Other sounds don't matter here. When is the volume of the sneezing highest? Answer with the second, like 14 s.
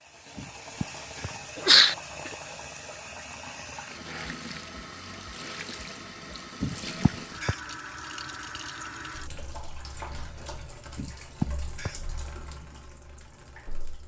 2 s.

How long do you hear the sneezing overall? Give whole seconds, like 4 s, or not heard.
4 s.